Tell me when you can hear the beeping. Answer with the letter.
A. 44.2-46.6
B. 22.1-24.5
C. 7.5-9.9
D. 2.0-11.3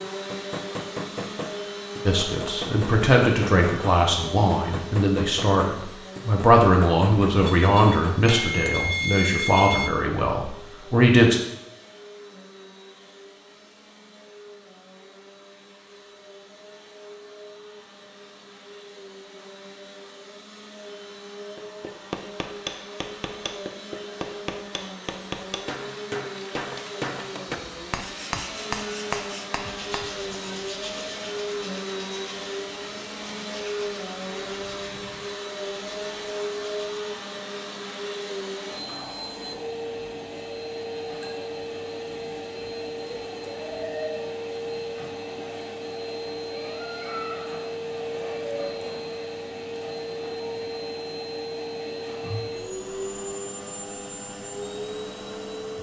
C.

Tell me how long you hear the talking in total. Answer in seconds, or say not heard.
9 s.